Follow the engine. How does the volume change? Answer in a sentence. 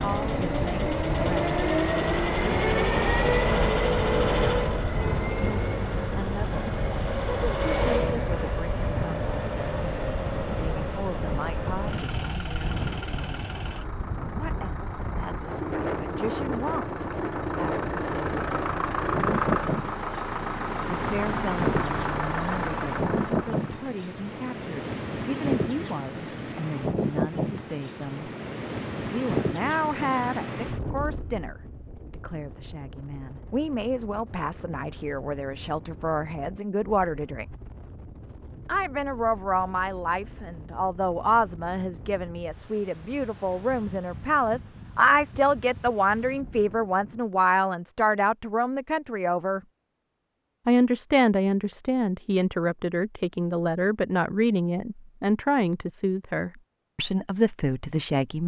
The loudness of the engine goes down, then up.